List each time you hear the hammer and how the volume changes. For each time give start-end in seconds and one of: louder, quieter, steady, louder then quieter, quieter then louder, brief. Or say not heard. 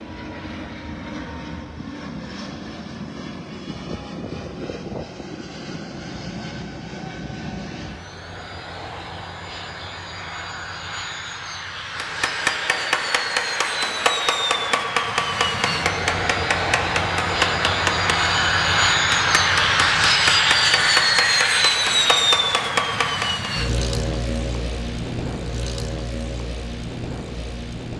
11.8-23.5 steady.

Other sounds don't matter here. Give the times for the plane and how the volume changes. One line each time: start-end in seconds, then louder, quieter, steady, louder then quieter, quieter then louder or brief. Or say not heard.
0.0-27.9 louder then quieter.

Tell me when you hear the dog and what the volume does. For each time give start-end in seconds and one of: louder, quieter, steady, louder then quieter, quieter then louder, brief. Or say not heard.
not heard.